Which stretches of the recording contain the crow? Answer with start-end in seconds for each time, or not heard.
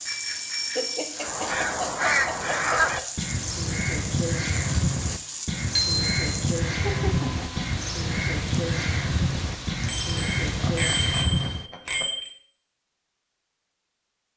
1.1-11.7.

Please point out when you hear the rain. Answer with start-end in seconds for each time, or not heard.
0.0-11.2.